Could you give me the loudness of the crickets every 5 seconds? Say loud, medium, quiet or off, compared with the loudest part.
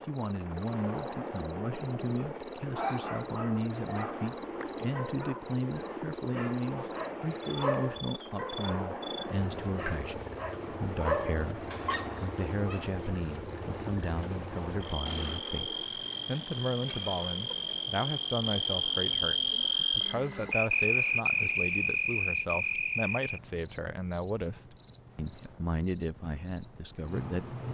quiet, quiet, quiet, loud, loud, medium.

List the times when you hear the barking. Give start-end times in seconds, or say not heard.
2.7-12.8.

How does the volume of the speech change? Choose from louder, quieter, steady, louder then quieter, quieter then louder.
steady.